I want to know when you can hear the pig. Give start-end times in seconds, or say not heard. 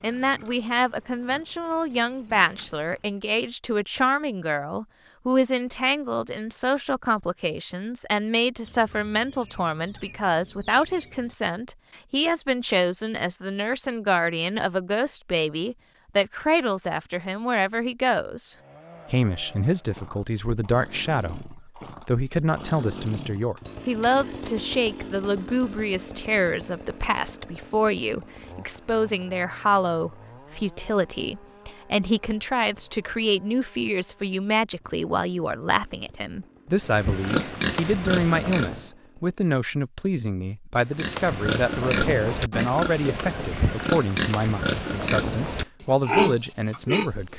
0.0-3.2, 36.8-38.9, 40.8-47.1.